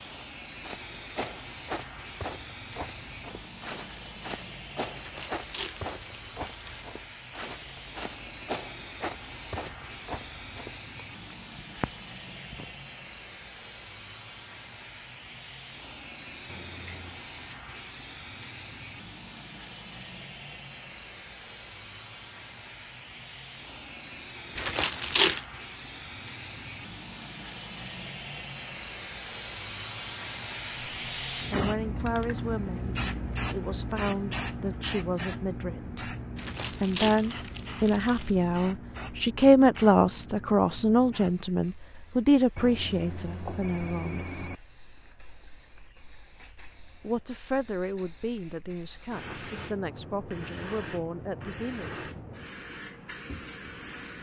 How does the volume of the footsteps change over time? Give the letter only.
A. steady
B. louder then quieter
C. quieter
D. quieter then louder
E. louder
A.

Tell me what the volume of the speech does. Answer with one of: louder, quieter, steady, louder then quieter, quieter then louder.
louder then quieter.